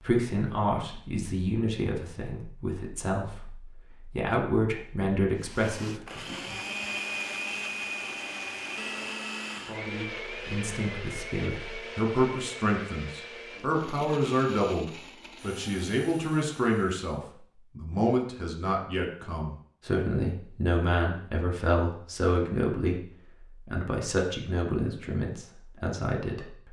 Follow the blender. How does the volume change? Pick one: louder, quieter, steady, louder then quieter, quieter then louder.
quieter.